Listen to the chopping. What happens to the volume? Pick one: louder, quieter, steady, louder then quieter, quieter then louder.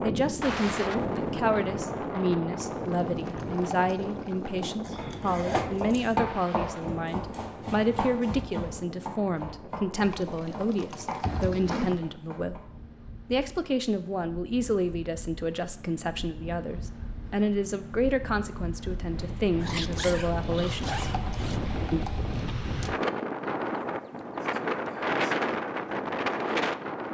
quieter.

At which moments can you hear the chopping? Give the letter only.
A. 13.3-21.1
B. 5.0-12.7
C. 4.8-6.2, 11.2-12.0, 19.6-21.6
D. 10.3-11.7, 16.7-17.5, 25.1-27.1
B.